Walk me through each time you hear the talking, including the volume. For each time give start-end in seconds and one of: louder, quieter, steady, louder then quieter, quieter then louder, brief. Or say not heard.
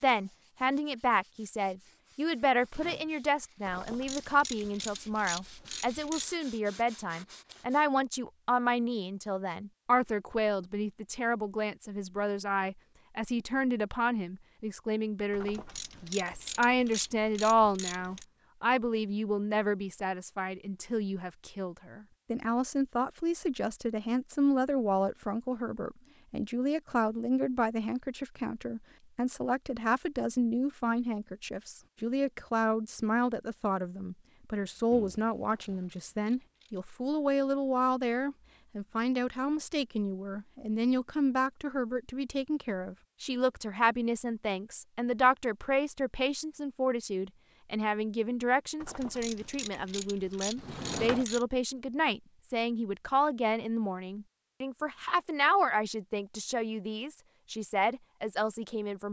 0.0-59.0 steady.